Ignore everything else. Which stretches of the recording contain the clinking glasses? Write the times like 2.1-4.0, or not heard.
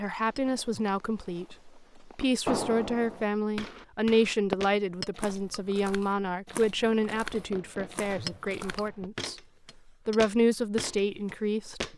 0.3-0.9, 5.0-5.6, 8.2-10.2.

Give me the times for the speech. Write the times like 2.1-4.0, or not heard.
0.0-9.3, 10.1-11.8.